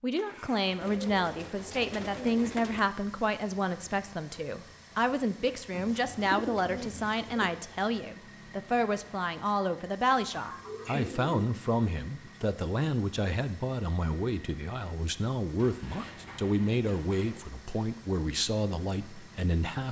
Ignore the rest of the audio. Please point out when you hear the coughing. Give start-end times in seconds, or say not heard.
not heard.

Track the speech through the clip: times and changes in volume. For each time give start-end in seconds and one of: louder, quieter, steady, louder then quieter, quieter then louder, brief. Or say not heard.
0.0-19.8 steady.